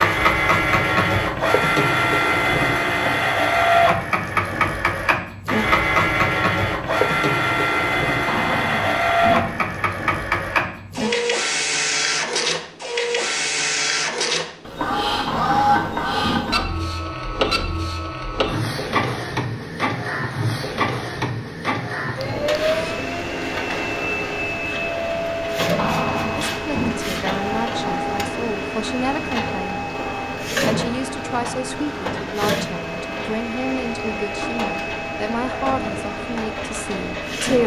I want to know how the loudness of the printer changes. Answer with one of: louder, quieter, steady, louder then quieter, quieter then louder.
quieter.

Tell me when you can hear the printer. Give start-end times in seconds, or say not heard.
0.0-37.6.